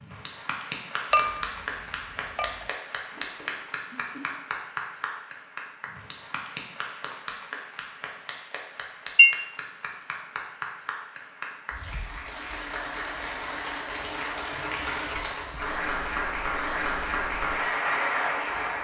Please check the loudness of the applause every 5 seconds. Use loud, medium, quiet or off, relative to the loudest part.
medium, medium, medium, loud.